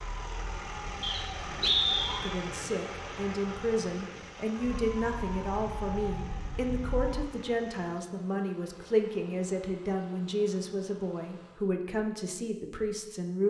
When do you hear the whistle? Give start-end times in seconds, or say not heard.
1.0-2.3.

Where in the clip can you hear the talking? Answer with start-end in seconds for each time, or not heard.
2.1-13.4.